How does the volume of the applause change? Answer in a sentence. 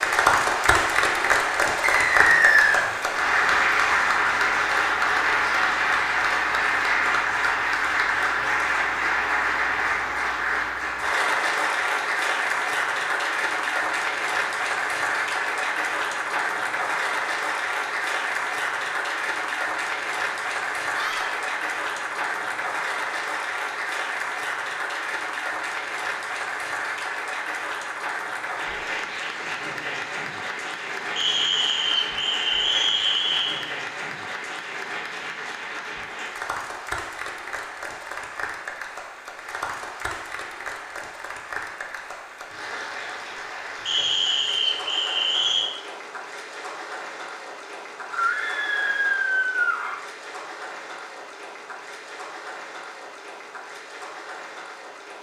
The loudness of the applause goes down.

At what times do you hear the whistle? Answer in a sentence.
You can hear the whistle from 1.8 to 2.9 s, from 31.1 to 33.6 s and from 43.9 to 45.7 s.